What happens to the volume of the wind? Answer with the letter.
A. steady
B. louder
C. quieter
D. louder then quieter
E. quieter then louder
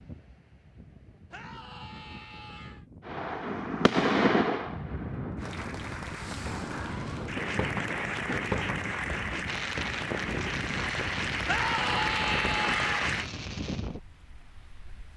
B.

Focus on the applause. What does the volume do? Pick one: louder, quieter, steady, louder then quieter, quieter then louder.
louder.